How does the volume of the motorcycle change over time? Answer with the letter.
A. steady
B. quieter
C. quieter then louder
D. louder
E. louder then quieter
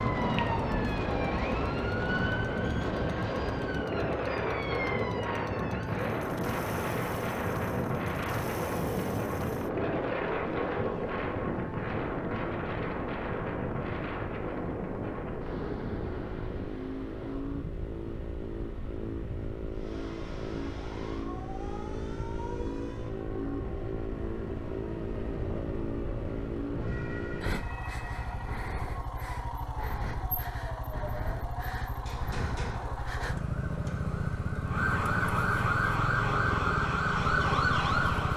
D.